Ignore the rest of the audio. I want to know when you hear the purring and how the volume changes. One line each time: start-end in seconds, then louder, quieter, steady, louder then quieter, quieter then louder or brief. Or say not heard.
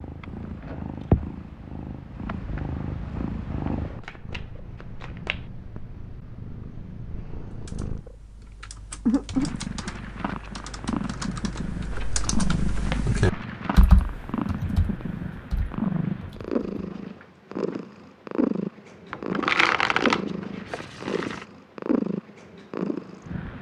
0.0-23.5 steady.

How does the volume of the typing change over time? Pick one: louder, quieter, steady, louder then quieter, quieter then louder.
louder then quieter.